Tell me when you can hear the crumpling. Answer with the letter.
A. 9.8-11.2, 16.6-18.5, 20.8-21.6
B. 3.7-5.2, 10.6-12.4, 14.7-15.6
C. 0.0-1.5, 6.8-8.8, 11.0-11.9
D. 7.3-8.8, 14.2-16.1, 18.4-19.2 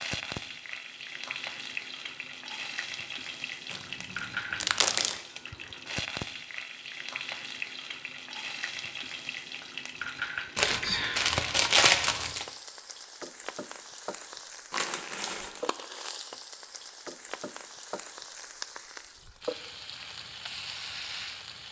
B.